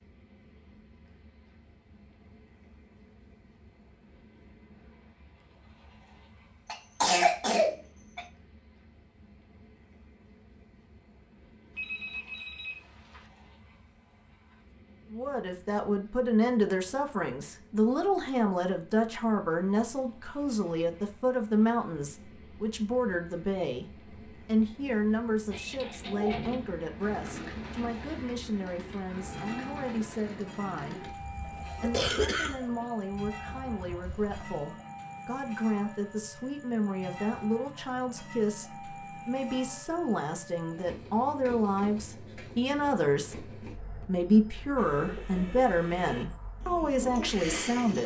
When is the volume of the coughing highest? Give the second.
7 s.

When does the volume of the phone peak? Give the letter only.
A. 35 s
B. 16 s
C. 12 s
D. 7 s
C.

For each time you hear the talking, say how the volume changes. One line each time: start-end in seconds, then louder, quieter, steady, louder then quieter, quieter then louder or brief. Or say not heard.
15.1-48.0 quieter then louder.